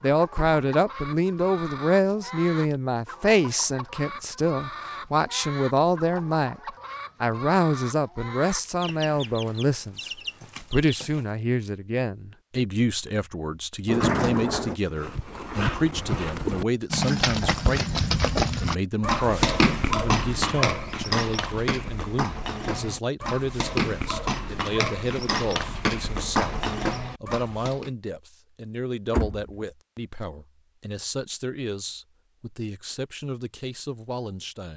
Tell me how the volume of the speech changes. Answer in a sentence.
The loudness of the speech goes down.